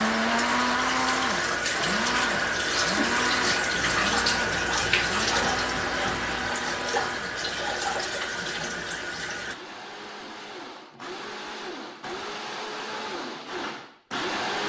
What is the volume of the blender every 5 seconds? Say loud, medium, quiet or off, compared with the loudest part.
loud, medium, medium.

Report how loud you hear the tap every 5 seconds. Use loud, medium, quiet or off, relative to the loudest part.
loud, loud, off.